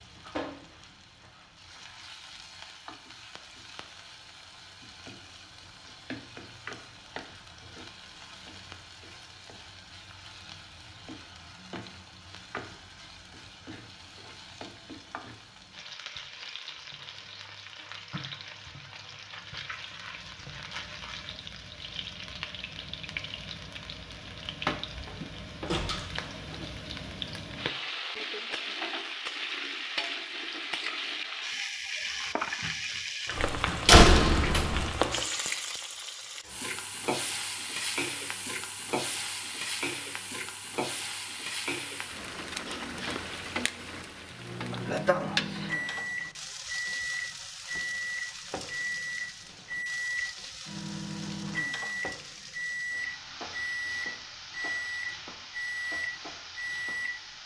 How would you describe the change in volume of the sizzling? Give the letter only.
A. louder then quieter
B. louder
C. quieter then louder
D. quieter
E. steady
A.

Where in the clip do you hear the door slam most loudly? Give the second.
34 s.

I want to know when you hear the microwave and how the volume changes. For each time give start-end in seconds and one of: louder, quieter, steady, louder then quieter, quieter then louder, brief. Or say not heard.
44.3-57.2 steady.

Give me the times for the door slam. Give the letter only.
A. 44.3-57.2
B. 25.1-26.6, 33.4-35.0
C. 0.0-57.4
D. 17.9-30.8
B.